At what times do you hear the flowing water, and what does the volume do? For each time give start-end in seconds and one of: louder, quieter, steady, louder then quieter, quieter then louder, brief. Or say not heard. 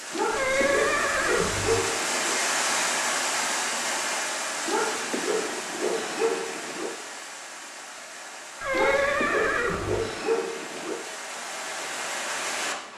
0.0-12.9 quieter then louder.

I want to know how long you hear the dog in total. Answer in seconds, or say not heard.
7 s.